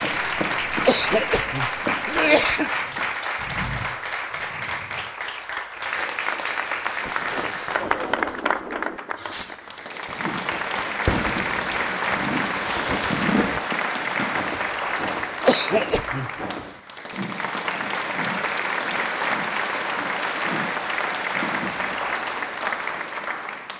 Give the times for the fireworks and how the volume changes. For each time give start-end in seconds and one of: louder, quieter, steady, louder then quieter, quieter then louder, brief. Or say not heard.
7.0-13.6 quieter then louder.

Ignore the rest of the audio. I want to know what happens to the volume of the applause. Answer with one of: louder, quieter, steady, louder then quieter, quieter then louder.
steady.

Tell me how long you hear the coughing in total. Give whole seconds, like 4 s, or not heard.
3 s.